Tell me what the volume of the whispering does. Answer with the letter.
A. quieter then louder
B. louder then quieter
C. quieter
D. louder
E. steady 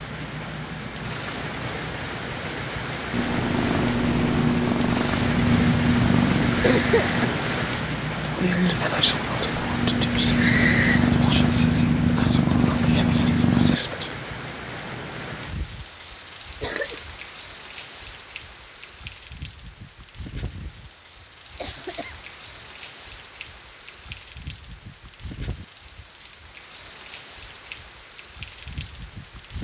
E.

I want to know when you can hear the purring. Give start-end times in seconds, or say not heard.
3.1-13.8.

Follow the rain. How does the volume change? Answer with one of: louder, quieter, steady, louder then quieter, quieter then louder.
quieter.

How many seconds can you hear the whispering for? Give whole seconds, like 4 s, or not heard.
6 s.